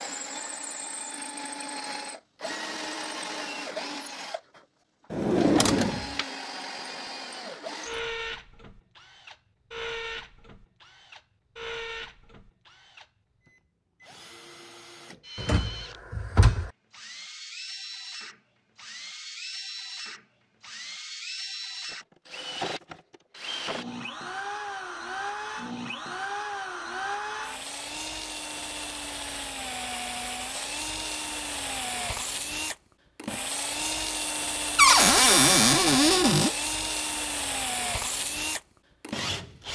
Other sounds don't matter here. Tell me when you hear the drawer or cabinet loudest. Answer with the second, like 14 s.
35 s.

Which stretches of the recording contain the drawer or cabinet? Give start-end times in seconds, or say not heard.
5.1-6.2, 15.3-16.7, 34.8-36.5.